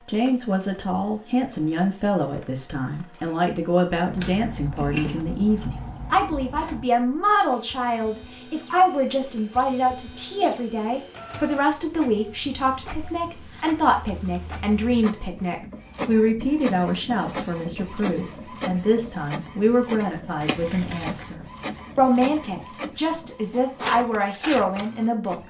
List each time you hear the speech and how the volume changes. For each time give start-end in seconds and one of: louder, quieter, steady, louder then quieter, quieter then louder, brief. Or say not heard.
0.1-25.4 steady.